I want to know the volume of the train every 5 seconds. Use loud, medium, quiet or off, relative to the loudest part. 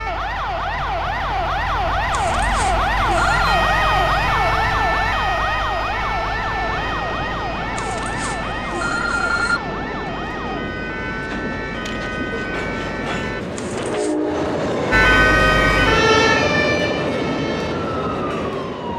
off, medium, loud, loud.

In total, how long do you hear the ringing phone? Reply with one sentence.
You can hear the ringing phone for 4 seconds altogether.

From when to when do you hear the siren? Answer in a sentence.
The siren can be heard from 0.0 to 13.4 s and from 14.9 to 18.9 s.